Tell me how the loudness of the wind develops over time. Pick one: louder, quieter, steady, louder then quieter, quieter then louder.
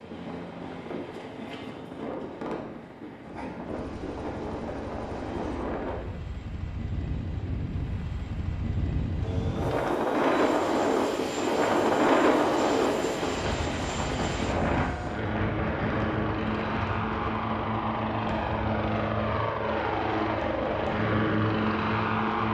louder then quieter.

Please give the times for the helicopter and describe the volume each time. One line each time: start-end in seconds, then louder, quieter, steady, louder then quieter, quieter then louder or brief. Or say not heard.
0.0-22.4 louder.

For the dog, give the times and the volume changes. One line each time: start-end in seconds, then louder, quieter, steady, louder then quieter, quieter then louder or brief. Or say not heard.
not heard.